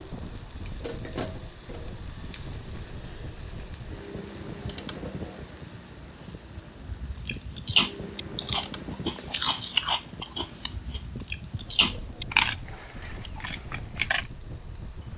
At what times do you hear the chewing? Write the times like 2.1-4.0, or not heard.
7.2-14.2.